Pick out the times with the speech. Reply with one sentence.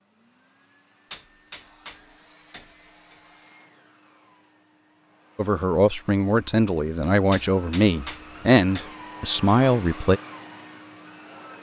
You can hear the speech from 5.3 to 10.2 s.